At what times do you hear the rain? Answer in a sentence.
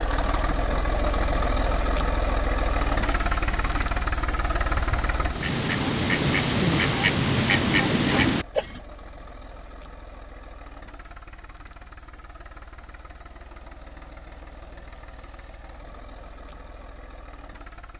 The rain can't be heard in this clip.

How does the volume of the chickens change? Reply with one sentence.
The loudness of the chickens goes up.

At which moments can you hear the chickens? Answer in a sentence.
You can hear the chickens from 2.9 to 8.8 s.